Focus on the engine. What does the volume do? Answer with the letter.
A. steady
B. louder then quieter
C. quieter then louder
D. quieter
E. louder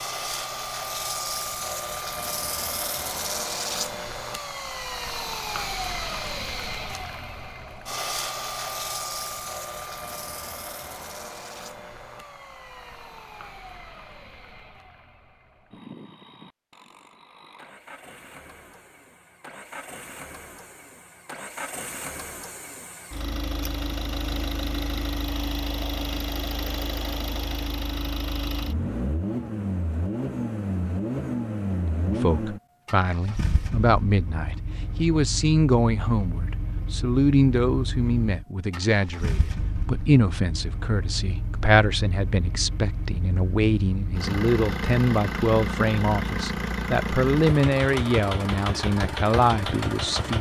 C.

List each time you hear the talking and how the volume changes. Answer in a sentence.
The talking can be heard from 32.0 to 50.3 s, at a steady volume.